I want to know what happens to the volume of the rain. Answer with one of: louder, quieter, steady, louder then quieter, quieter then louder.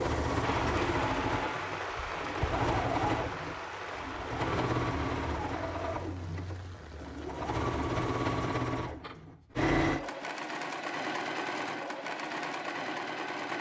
quieter.